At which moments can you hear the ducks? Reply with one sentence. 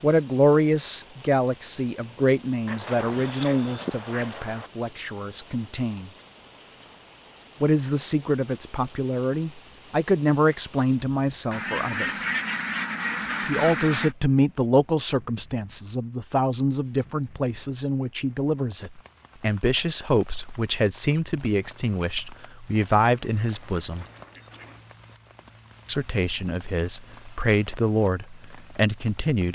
The ducks can be heard from 2.6 to 4.7 s, from 11.5 to 14.2 s and from 22.8 to 24.9 s.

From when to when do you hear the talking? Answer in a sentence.
The talking can be heard from 0.0 to 6.1 s, from 7.6 to 12.2 s, from 13.4 to 24.1 s and from 25.9 to 29.5 s.